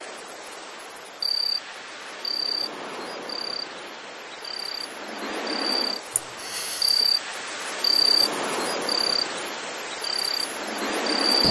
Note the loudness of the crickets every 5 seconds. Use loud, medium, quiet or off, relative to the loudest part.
medium, loud, loud.